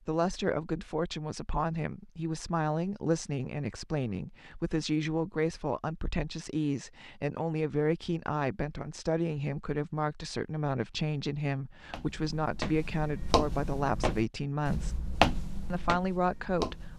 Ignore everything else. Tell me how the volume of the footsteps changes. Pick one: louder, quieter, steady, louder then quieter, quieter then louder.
louder then quieter.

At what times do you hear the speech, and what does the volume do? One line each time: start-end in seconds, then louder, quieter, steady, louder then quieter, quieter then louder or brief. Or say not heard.
0.1-15.1 steady
15.7-16.9 brief.